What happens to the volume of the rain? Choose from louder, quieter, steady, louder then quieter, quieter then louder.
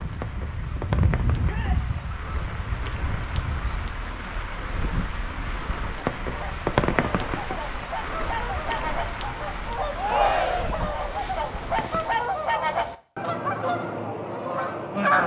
louder then quieter.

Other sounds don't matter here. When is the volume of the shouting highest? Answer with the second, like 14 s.
10 s.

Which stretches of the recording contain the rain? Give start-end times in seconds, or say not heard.
0.0-12.2.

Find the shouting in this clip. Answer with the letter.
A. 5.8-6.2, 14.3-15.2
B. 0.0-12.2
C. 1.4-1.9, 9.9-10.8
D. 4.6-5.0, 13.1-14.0
C.